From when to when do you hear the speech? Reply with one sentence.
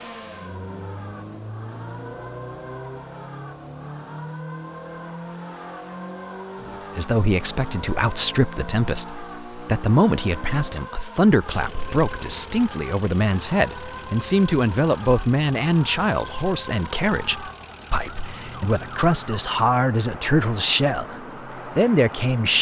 The speech can be heard from 6.6 to 22.5 s.